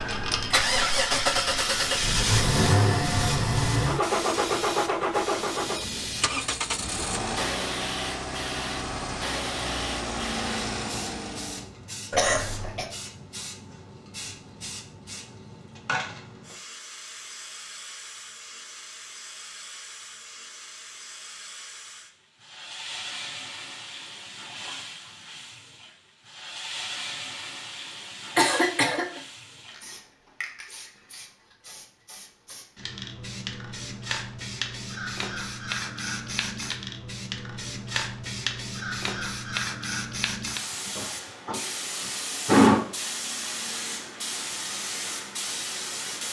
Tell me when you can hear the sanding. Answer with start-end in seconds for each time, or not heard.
not heard.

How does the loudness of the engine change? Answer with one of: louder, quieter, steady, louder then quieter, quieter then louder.
quieter.